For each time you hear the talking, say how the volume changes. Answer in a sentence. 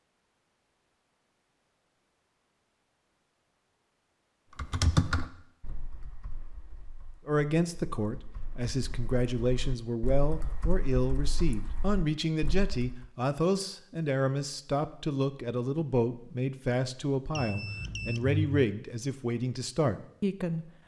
The talking can be heard from 7.2 to 20.6 s, at a steady volume.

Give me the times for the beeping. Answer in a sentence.
The beeping can be heard from 17.4 to 18.6 s.